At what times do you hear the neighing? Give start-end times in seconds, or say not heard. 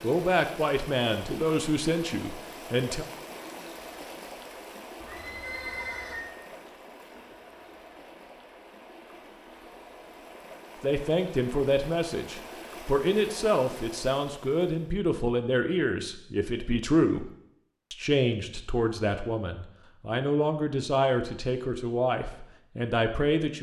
5.0-6.3.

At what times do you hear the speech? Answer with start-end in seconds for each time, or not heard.
0.0-3.0, 10.8-17.3, 17.9-23.5.